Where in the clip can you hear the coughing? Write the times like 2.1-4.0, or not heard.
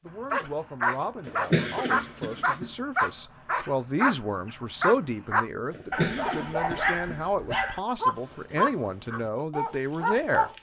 1.2-2.7, 5.7-7.7.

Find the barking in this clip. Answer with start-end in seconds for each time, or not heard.
0.3-10.5.